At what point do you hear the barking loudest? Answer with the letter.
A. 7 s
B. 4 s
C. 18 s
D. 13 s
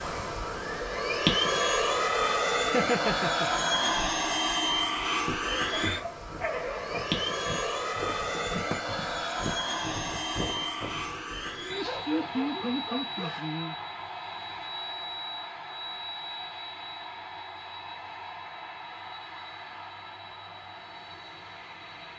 A.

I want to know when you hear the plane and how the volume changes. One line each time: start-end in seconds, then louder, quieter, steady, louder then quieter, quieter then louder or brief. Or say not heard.
0.0-22.1 quieter.